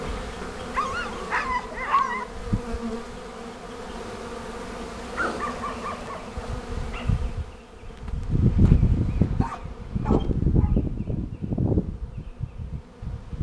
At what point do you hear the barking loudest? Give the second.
2 s.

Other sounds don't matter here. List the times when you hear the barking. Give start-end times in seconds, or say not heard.
0.7-2.2, 5.2-7.1, 9.2-10.8.